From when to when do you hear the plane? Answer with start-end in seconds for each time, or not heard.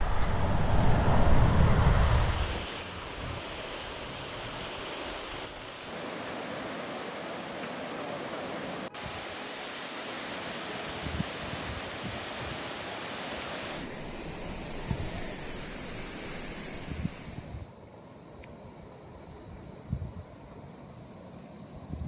0.0-2.6.